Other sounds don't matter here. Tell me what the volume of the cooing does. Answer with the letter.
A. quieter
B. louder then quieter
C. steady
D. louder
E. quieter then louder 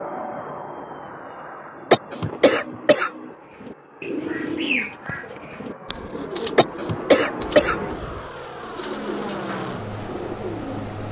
A.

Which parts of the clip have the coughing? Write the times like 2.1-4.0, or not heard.
1.9-3.3, 6.5-8.0.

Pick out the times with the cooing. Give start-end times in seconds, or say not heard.
3.5-10.9.